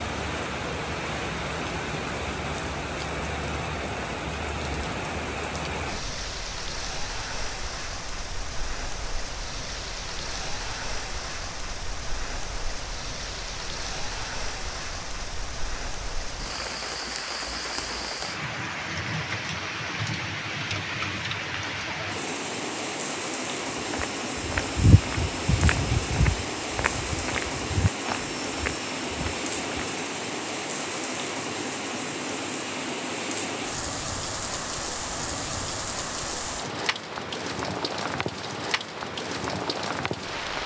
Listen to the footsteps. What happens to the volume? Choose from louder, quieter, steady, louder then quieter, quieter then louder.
quieter.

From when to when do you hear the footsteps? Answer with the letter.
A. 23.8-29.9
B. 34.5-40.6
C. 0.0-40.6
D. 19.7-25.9
A.